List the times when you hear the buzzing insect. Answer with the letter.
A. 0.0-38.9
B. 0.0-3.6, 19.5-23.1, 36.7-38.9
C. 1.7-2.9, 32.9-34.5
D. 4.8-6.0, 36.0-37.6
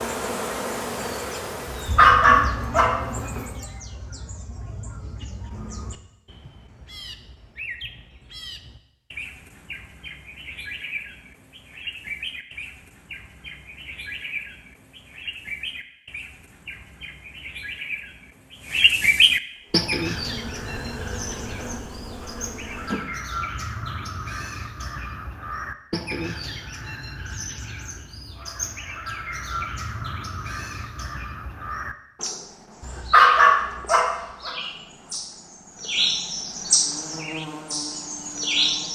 B.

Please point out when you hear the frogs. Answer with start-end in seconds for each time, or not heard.
not heard.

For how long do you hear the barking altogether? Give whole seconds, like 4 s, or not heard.
3 s.